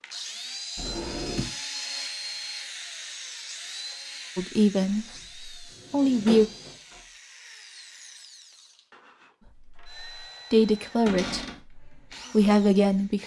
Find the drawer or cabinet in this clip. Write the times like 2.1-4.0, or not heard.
0.8-1.5, 4.8-7.0, 11.1-11.6.